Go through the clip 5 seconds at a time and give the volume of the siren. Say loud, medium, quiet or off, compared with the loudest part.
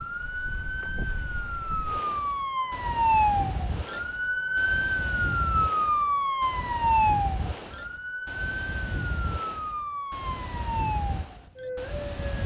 loud, loud, medium.